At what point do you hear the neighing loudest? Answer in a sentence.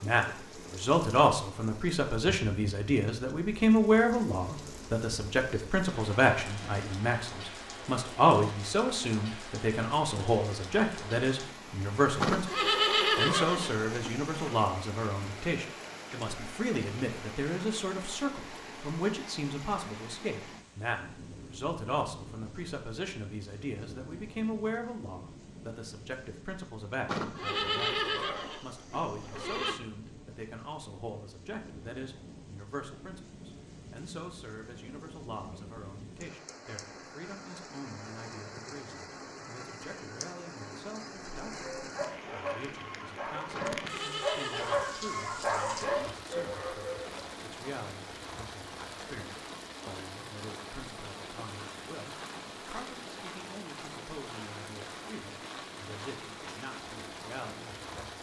The loudest moment of the neighing is at 13 seconds.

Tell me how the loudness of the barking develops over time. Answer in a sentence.
The volume of the barking goes up.